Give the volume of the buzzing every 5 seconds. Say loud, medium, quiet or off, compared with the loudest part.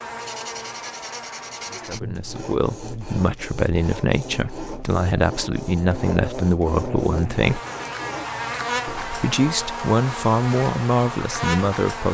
medium, loud, loud.